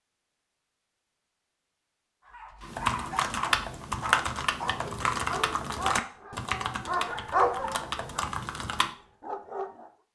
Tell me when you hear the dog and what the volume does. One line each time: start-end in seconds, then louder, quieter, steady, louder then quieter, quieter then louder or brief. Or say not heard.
2.2-9.9 louder then quieter.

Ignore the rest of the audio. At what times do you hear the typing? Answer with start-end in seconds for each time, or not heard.
2.6-8.9.